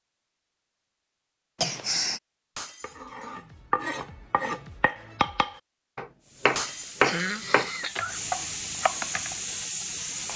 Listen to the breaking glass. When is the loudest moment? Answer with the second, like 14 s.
7 s.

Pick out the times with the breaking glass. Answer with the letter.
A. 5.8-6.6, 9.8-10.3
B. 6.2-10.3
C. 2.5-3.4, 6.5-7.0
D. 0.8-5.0
C.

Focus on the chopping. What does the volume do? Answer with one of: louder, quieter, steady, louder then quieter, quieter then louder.
louder then quieter.